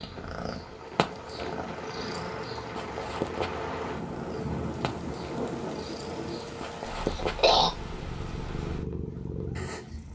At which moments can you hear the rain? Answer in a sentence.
The rain can be heard from 0.0 to 10.0 s.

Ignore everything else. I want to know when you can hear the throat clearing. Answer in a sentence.
The throat clearing can be heard from 7.1 to 7.7 s.